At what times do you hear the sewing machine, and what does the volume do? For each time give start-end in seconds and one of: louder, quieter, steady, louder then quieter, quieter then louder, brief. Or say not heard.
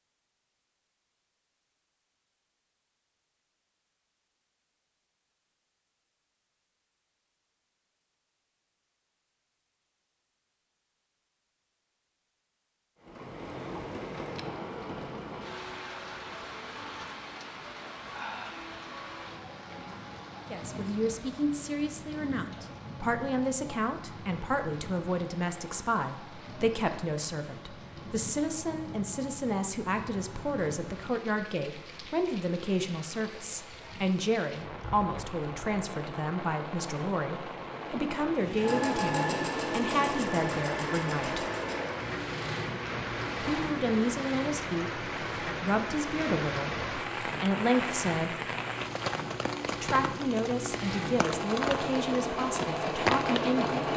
38.5-53.9 quieter then louder.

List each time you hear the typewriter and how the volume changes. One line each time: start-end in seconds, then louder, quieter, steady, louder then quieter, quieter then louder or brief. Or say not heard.
not heard.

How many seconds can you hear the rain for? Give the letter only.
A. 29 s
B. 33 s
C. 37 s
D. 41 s
D.